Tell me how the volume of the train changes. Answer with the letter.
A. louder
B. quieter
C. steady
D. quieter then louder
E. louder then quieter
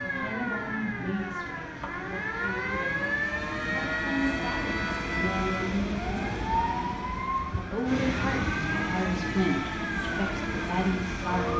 A.